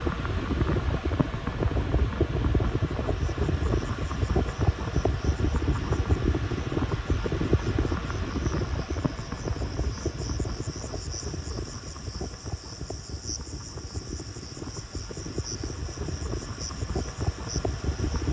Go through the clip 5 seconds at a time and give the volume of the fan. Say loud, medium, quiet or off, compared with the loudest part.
loud, loud, medium, medium.